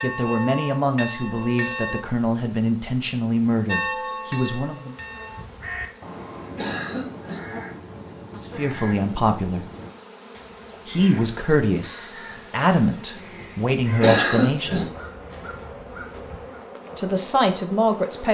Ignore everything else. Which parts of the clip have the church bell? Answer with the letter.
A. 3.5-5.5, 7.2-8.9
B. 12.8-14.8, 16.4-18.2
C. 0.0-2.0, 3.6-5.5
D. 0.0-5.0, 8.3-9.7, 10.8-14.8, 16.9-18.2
C.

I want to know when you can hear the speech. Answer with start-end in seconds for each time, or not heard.
0.0-5.0, 8.3-9.7, 10.8-14.8, 16.9-18.2.